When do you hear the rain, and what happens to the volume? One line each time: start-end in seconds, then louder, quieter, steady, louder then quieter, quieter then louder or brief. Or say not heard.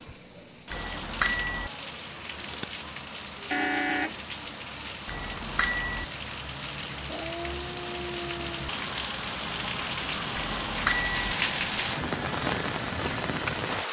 0.0-13.8 louder.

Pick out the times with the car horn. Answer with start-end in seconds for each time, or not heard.
3.5-4.2.